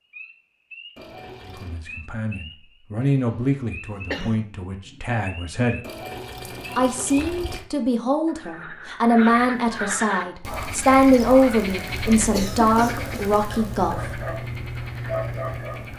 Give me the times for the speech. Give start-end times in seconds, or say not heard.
1.4-5.8, 6.8-14.2.